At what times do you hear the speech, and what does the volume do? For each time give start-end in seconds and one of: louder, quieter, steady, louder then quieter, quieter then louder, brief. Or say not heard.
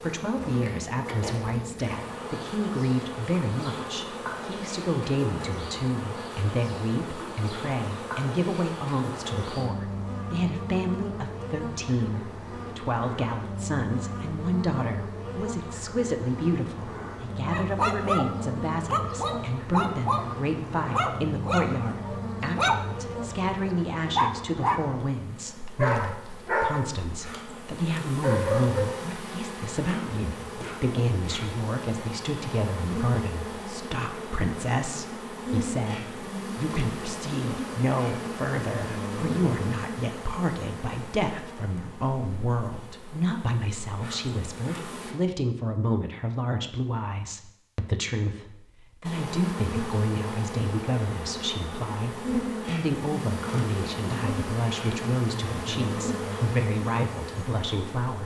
0.0-58.2 steady.